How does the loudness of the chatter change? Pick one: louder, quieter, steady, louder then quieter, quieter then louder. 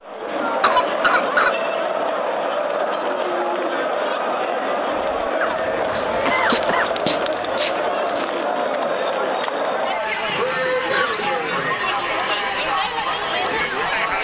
steady.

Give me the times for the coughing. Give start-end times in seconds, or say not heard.
0.6-1.6, 5.4-6.9, 10.7-11.6.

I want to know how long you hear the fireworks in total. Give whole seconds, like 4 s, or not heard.
not heard.